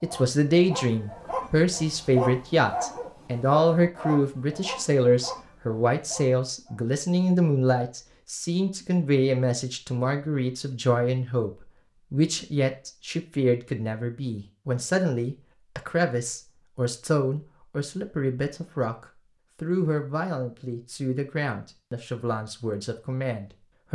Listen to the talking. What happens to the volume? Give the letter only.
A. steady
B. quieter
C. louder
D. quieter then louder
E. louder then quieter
B.